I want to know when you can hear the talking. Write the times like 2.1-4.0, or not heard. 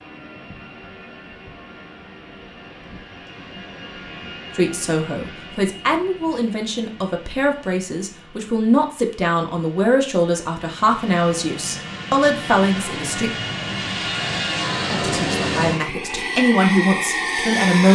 4.5-13.3, 14.8-17.8.